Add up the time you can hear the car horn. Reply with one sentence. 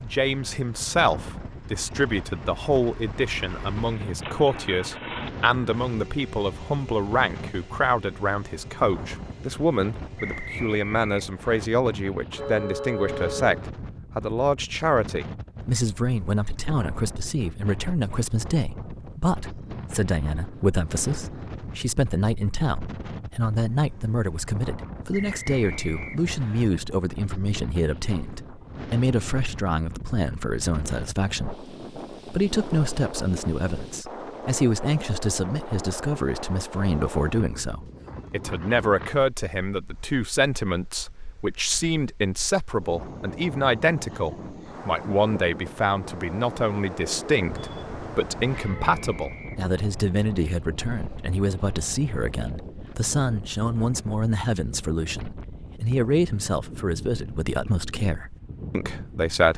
The car horn can be heard for 3 seconds in total.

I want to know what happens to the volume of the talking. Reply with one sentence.
The volume of the talking stays about the same.